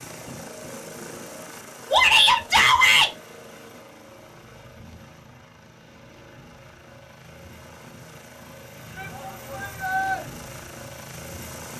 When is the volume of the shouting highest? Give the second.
2 s.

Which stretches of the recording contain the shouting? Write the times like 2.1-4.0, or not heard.
1.9-3.1, 8.9-10.2.